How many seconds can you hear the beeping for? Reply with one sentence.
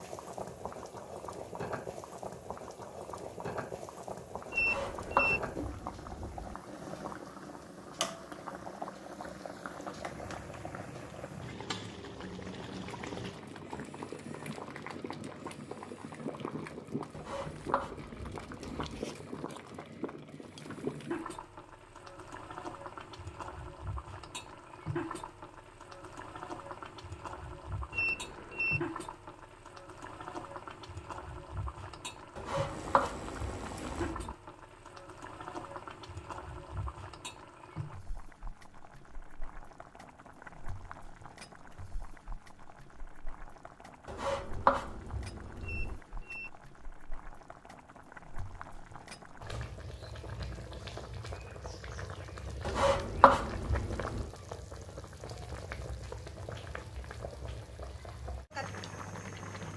The beeping can be heard for 3 seconds in total.